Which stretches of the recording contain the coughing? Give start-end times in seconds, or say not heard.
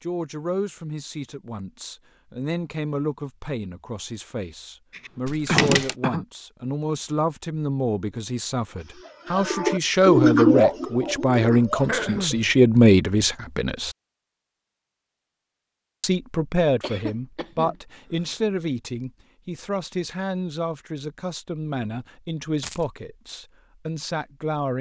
4.9-6.2, 11.8-12.5, 16.8-18.4.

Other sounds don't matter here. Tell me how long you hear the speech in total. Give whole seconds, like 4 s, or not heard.
23 s.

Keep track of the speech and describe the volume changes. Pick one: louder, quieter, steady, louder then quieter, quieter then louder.
louder then quieter.